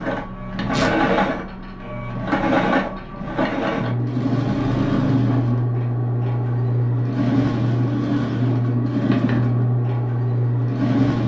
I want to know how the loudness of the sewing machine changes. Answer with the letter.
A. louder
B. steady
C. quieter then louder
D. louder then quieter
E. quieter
B.